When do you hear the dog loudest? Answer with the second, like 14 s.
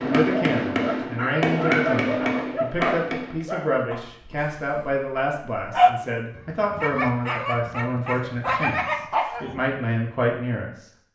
6 s.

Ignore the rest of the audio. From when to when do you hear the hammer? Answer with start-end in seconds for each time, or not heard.
0.0-3.5.